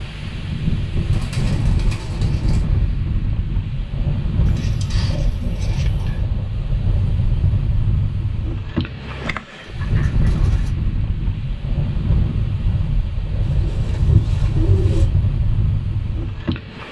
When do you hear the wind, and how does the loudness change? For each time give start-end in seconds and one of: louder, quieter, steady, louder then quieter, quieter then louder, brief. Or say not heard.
0.0-16.8 steady.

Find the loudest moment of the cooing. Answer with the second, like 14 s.
14 s.